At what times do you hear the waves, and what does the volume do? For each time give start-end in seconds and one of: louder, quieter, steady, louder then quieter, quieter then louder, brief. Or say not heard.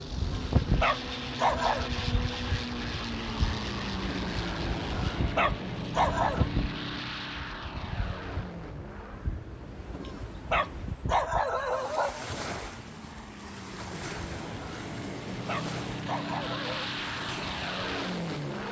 0.0-18.6 quieter.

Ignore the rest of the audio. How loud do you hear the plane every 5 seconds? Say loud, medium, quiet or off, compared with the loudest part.
loud, loud, medium, loud.